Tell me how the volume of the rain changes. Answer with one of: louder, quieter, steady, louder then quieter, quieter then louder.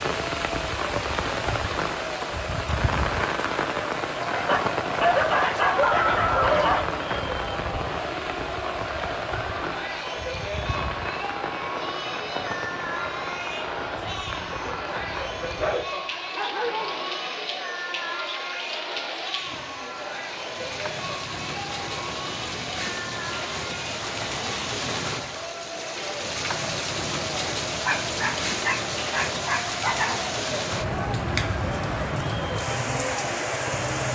quieter then louder.